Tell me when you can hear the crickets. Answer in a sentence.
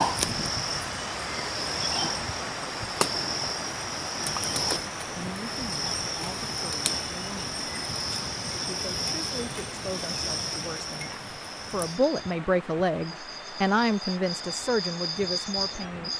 You can hear the crickets from 0.0 to 16.1 s.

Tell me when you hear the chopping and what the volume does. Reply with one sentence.
You can't hear the chopping here.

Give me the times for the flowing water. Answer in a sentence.
You can hear the flowing water from 0.0 to 16.1 s.